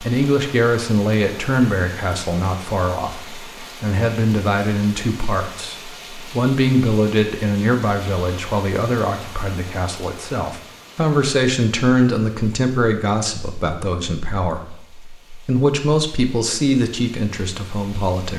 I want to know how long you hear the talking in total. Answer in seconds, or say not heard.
18 s.